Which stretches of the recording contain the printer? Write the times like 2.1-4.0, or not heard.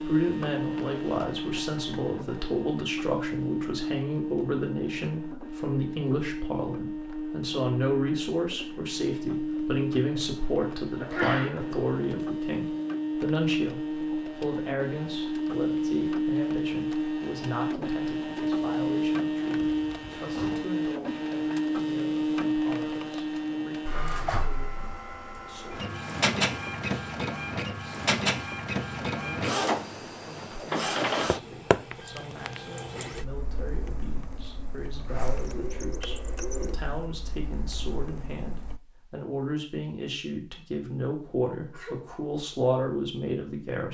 0.0-38.8.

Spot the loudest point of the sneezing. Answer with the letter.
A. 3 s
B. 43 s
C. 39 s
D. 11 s
D.